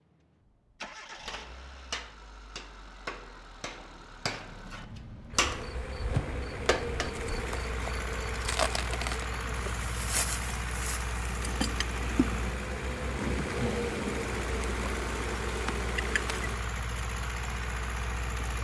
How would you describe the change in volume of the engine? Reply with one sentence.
The loudness of the engine goes up.